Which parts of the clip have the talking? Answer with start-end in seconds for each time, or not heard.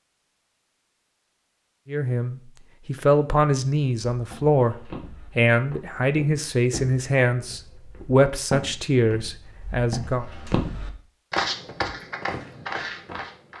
1.9-10.2.